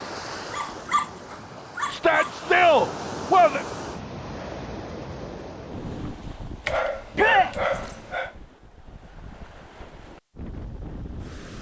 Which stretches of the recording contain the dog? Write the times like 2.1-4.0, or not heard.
0.5-2.4, 6.7-8.3.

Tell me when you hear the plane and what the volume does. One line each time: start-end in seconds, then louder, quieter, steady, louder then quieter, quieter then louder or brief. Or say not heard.
not heard.